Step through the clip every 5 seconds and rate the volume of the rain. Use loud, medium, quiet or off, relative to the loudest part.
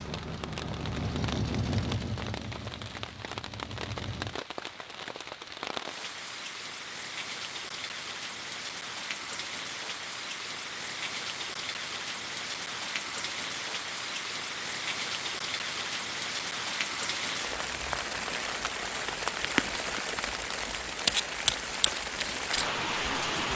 medium, medium, medium, loud, loud.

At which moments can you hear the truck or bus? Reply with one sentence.
The truck or bus can be heard from 0.0 to 4.4 s.